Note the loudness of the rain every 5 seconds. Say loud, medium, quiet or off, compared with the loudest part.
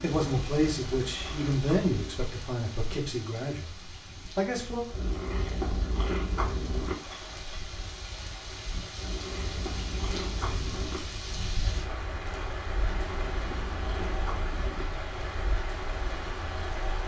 medium, medium, loud, loud.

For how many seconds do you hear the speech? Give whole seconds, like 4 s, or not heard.
5 s.